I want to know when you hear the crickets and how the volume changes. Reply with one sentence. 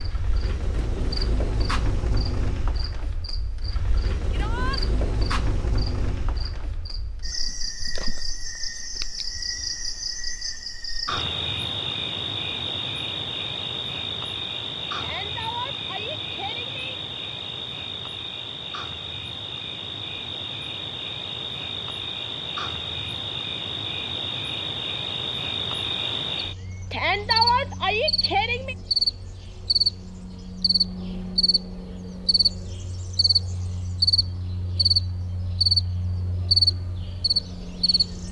You can hear the crickets from 0.0 to 38.2 s, getting louder.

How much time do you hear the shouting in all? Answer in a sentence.
The shouting can be heard for 4 seconds in total.